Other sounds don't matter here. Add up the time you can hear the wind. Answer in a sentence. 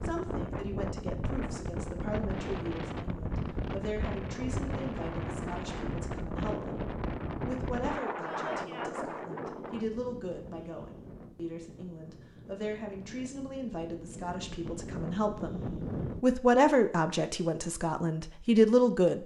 The wind can be heard for 16 seconds in total.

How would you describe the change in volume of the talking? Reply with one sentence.
The volume of the talking goes up.